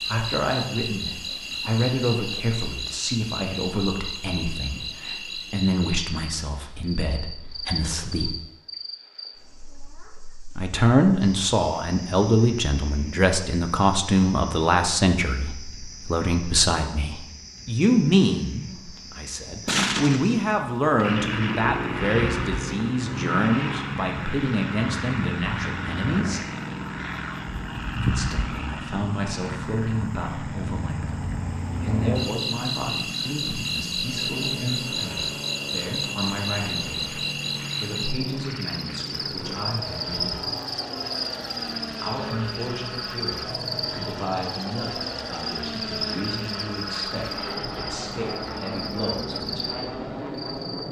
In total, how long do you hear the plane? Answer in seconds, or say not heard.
30 s.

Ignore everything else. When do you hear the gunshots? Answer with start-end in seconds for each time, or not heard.
19.6-21.1.